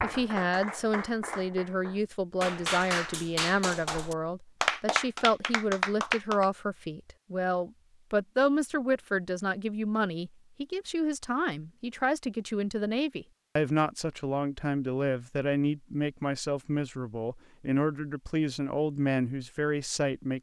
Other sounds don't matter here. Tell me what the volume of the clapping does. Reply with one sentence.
The loudness of the clapping goes up.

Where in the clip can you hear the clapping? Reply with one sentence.
You can hear the clapping from 0.0 to 6.5 s.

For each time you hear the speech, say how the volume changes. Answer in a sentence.
You can hear the speech from 0.0 to 20.3 s, at a steady volume.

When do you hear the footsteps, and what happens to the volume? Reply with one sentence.
The footsteps can't be heard in this clip.